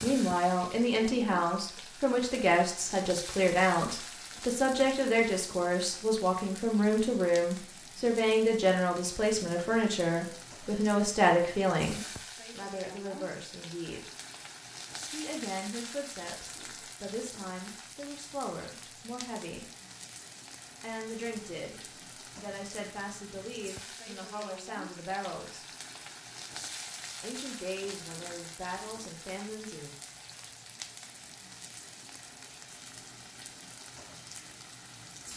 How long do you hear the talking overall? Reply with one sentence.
The talking can be heard for 26 seconds in total.